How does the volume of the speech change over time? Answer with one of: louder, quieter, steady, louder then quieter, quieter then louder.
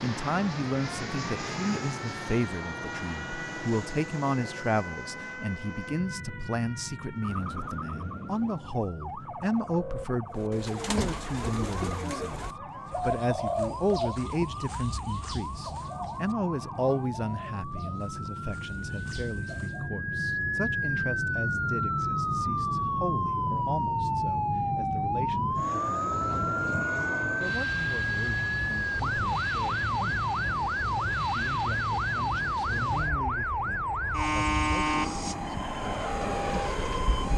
quieter.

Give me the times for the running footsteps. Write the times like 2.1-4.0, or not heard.
not heard.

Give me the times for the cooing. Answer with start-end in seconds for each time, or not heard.
10.3-19.9.